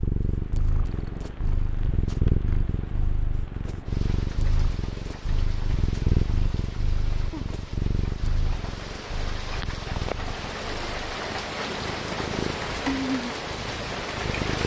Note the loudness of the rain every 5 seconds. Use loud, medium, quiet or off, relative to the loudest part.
quiet, medium, loud.